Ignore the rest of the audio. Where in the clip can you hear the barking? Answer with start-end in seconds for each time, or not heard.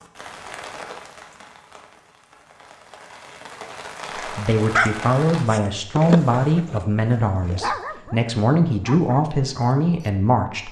4.7-10.1.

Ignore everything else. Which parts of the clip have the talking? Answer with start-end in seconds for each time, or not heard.
4.2-10.6.